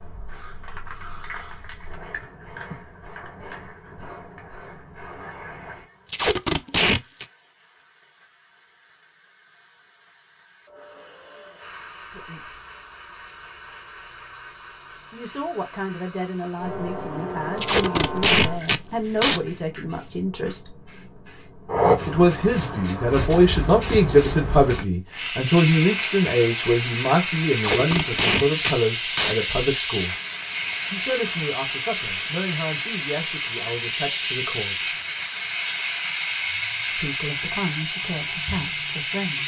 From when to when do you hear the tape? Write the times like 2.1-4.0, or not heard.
6.0-7.2, 17.6-19.4, 27.5-29.4.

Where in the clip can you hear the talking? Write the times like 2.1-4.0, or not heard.
12.1-12.6, 15.1-20.7, 22.1-30.1, 30.9-34.9, 36.9-39.4.